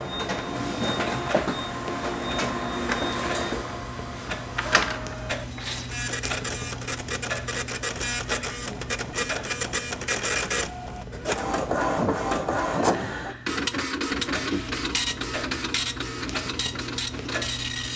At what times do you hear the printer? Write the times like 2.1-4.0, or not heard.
0.0-17.9.